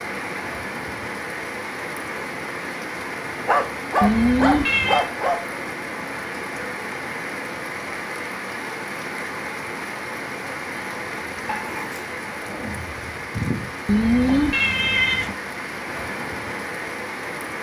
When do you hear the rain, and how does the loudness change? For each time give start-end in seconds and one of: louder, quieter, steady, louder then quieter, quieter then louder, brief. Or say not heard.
0.0-17.5 steady.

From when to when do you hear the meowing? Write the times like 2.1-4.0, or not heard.
4.0-5.0, 13.8-15.3.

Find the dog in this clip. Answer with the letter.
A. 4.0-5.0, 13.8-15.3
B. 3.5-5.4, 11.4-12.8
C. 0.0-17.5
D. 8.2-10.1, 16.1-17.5
B.